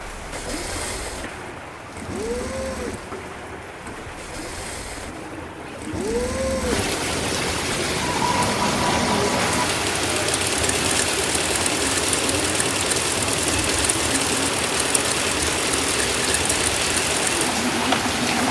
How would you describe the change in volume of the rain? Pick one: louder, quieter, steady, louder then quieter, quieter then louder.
louder.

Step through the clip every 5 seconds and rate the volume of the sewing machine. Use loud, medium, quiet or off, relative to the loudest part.
medium, loud, loud, loud.